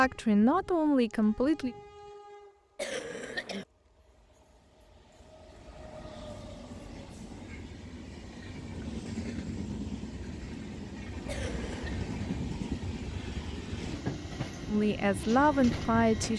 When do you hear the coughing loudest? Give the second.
3 s.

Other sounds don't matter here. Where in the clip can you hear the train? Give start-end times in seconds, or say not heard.
0.0-16.3.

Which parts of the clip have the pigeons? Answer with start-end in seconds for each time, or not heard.
not heard.